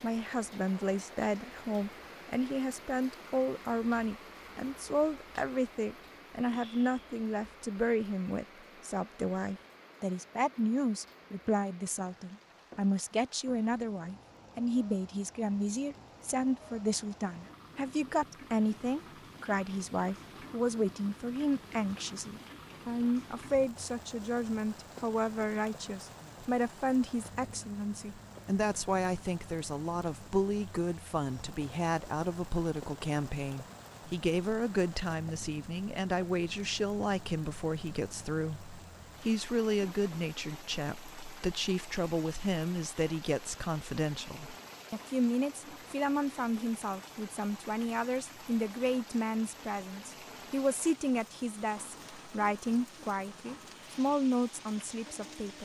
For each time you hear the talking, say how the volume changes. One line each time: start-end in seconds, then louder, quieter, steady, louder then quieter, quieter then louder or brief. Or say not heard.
0.0-55.6 steady.